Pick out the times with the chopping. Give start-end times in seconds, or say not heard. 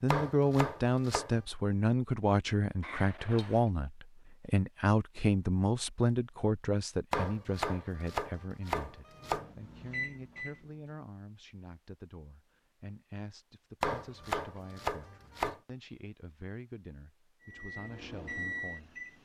0.1-1.4, 7.1-9.4, 13.8-15.6.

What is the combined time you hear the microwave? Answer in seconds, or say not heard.
4 s.